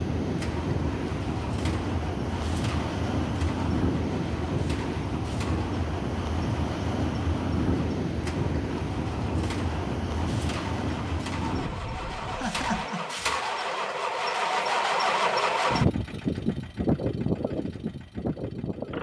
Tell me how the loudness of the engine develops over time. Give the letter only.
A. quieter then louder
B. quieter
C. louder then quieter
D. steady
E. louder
E.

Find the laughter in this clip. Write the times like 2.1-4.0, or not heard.
12.3-13.2.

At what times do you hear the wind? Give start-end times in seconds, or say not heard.
0.0-12.9.